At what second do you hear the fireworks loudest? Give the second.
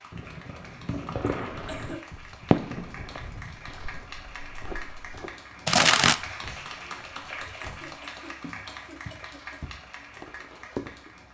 6 s.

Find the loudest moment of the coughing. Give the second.
2 s.